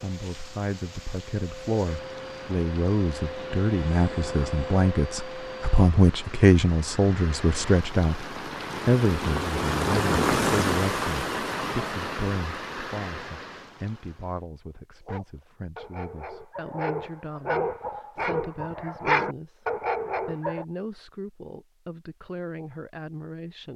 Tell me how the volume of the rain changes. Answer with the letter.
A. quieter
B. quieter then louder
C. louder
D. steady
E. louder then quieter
E.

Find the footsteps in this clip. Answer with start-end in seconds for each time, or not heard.
not heard.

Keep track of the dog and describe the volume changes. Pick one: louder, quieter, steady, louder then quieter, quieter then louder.
louder.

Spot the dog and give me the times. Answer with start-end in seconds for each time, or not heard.
15.1-20.6.